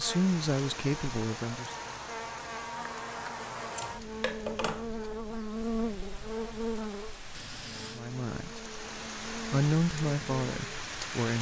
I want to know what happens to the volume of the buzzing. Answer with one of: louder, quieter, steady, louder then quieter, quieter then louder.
louder then quieter.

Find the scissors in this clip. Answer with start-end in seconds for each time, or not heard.
3.8-4.9.